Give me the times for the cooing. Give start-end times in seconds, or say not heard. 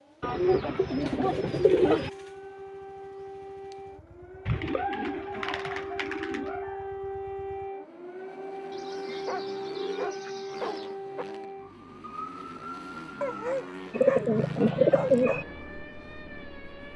0.2-2.1, 4.5-6.5, 8.7-10.9, 13.9-15.4.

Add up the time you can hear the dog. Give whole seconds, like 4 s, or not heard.
7 s.